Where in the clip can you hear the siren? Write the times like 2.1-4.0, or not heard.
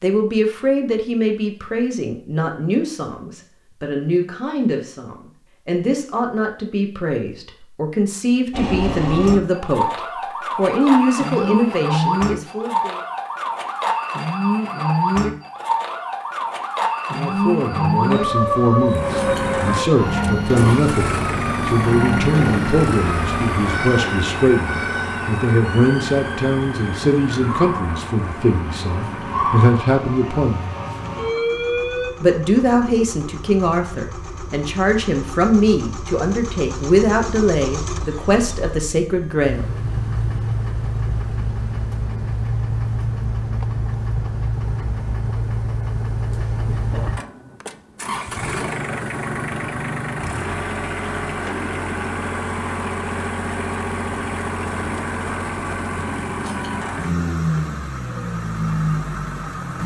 8.5-32.1.